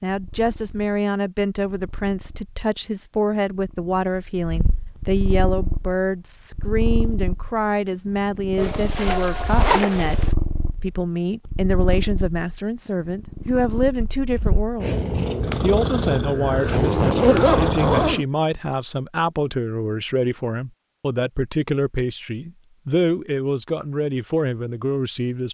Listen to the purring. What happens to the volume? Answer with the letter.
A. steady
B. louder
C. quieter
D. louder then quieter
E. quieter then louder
B.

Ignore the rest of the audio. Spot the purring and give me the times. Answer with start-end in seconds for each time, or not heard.
0.1-18.2.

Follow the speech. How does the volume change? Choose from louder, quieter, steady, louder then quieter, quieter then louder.
steady.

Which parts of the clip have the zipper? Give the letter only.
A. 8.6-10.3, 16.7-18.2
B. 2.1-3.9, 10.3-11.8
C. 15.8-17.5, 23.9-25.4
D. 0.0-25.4
A.